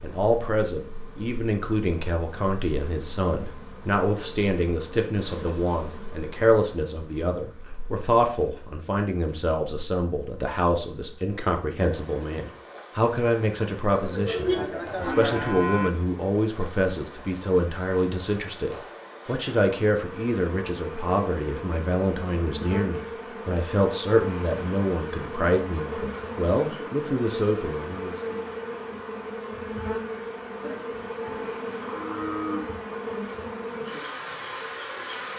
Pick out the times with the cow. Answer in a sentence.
The cow can be heard from 13.9 to 15.9 s and from 30.6 to 32.6 s.